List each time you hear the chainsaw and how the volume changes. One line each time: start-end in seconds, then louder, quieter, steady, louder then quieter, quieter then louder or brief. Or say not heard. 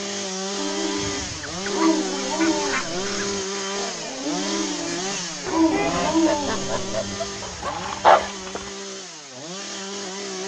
0.0-10.4 quieter.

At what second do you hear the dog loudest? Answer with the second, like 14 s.
8 s.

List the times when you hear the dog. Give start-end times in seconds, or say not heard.
0.6-8.7.